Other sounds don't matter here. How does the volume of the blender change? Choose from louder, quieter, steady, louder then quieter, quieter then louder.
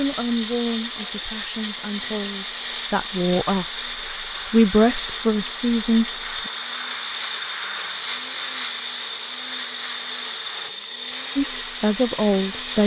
steady.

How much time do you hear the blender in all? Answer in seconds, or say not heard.
13 s.